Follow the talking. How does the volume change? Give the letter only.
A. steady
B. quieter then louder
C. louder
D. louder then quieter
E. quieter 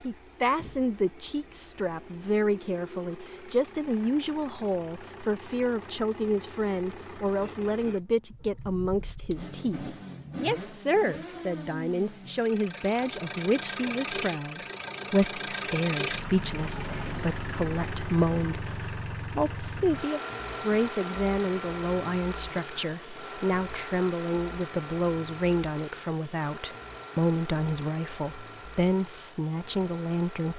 A.